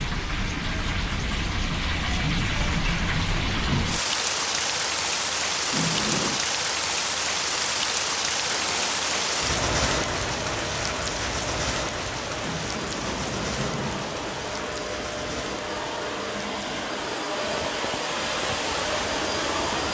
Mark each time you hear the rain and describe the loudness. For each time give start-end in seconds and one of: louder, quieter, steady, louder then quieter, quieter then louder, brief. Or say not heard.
0.0-19.9 quieter.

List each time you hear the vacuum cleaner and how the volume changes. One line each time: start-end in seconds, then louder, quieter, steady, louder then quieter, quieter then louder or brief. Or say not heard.
8.4-19.9 louder.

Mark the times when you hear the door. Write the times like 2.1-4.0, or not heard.
5.7-6.4, 12.4-14.3.